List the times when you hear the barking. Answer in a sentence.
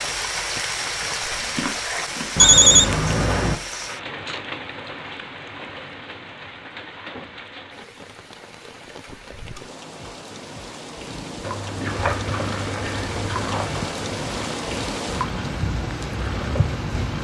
The barking can't be heard in this clip.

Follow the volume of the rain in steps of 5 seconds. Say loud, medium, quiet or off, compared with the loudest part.
loud, medium, loud, loud.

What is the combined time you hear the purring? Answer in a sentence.
You can hear the purring for 6 seconds altogether.